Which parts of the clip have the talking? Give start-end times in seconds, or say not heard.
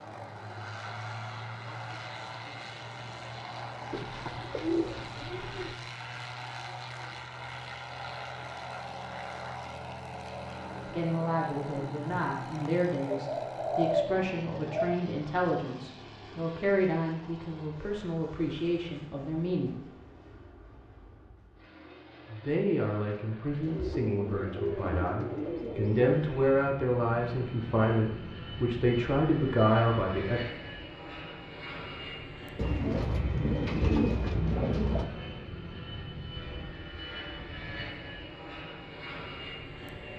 10.8-19.8, 22.2-30.4.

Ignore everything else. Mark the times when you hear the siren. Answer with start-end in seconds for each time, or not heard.
not heard.